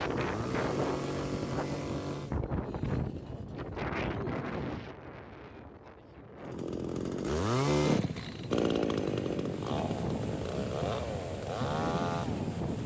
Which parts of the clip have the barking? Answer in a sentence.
You can't hear the barking here.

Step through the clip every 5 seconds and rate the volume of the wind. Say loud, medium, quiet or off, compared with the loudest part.
loud, medium, loud.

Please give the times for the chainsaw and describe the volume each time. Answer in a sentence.
You can hear the chainsaw briefly from 0.0 to 2.4 s; and from 6.5 to 12.8 s, getting quieter.